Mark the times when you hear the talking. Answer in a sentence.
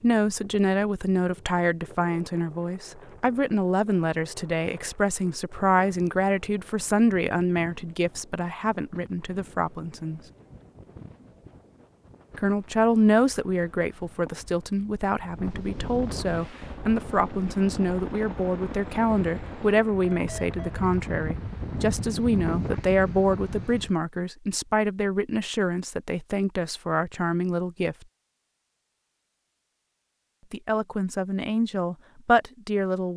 The talking can be heard from 0.0 to 10.2 s, from 12.3 to 27.9 s and from 30.5 to 33.1 s.